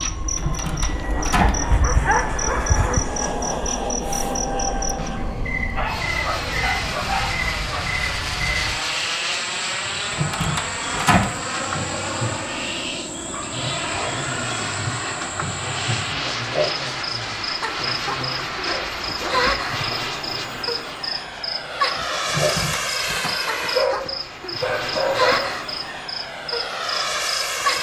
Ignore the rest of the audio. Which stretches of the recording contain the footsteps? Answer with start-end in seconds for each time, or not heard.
not heard.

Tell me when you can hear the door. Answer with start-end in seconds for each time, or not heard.
0.3-1.6, 10.1-11.3, 22.2-23.4.